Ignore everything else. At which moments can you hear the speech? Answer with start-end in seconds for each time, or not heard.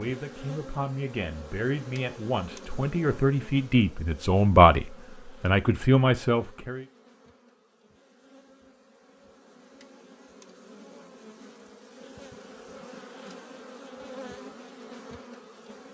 0.0-6.8.